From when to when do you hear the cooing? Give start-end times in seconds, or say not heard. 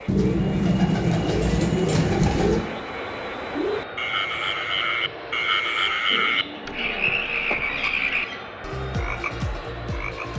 0.1-2.7, 6.1-8.4.